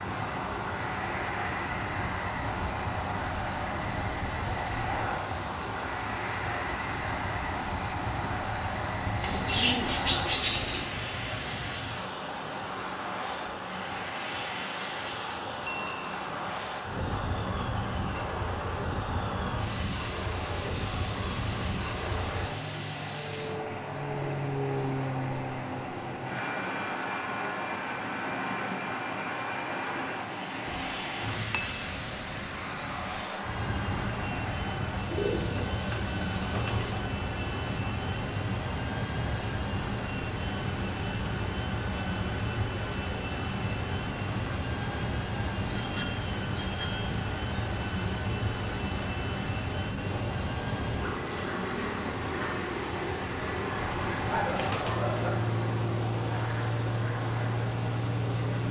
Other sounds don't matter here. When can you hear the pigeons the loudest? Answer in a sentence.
The loudest moment of the pigeons is at 10 seconds.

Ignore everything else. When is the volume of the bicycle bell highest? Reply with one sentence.
The loudest moment of the bicycle bell is at 16 seconds.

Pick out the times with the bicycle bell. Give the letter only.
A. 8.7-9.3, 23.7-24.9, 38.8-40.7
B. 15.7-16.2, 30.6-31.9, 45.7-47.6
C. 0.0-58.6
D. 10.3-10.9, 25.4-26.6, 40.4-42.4
B.